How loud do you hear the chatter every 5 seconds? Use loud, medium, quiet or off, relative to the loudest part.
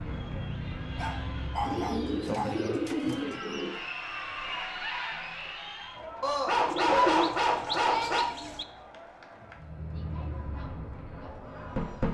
loud, loud, medium.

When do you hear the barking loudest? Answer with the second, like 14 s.
7 s.